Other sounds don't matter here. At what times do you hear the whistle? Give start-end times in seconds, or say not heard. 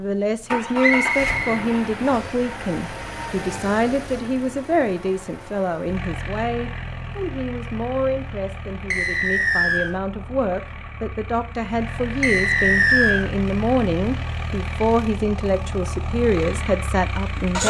0.8-2.3, 8.9-9.9, 12.2-13.2.